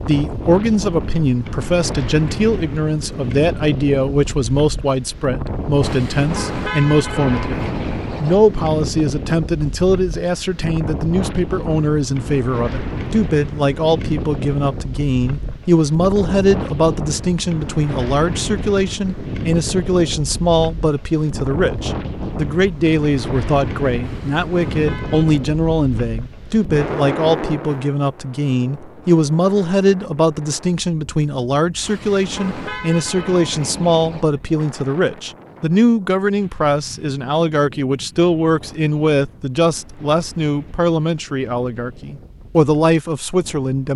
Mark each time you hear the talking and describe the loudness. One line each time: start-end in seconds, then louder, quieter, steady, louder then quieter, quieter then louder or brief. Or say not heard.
0.1-43.9 steady.